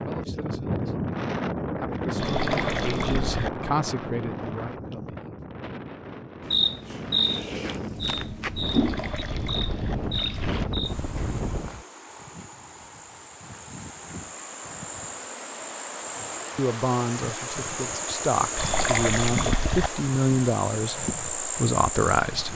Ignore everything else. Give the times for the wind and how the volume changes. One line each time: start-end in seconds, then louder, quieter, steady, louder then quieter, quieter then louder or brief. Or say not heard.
0.0-11.8 quieter then louder.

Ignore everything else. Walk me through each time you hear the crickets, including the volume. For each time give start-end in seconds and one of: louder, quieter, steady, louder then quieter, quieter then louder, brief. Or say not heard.
6.5-22.5 quieter then louder.